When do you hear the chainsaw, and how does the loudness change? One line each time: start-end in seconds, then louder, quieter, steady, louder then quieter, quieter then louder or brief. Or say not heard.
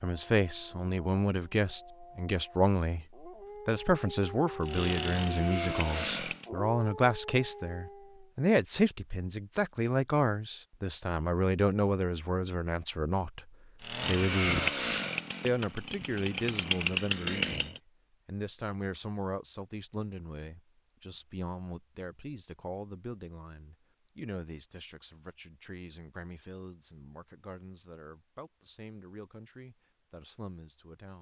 4.6-6.5 brief
13.8-17.8 quieter then louder.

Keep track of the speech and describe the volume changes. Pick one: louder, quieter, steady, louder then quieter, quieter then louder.
quieter.